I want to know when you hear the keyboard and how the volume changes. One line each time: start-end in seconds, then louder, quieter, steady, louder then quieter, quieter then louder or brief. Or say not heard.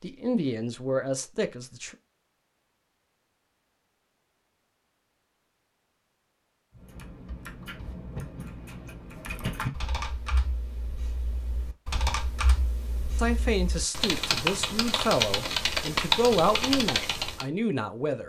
6.8-17.4 louder.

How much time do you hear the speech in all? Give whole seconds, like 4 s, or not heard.
7 s.